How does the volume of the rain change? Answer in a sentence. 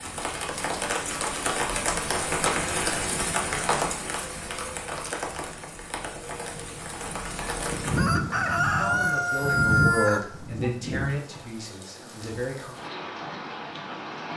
The loudness of the rain goes down.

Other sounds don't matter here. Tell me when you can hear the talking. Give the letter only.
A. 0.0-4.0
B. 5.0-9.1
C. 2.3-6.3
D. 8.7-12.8
D.